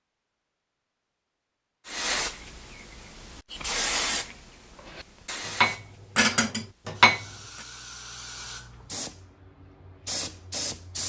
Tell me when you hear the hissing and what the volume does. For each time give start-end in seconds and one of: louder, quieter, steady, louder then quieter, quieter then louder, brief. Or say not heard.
1.9-11.0 quieter then louder.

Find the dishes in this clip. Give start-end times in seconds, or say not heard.
4.8-7.7.